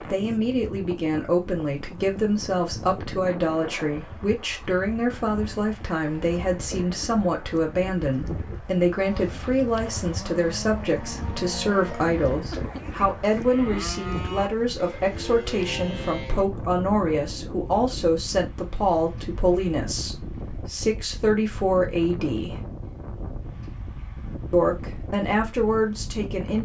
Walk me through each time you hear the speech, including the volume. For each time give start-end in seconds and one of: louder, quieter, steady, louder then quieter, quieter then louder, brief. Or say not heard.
0.0-22.6 steady
24.5-26.5 brief.